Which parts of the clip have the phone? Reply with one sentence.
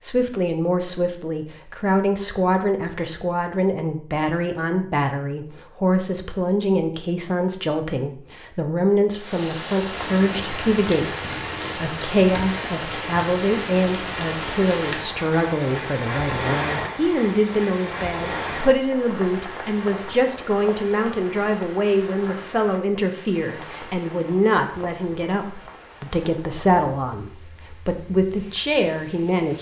You can't hear the phone here.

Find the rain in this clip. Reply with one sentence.
You can hear the rain from 9.2 to 29.5 s.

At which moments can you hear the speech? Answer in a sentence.
The speech can be heard from 0.0 to 29.5 s.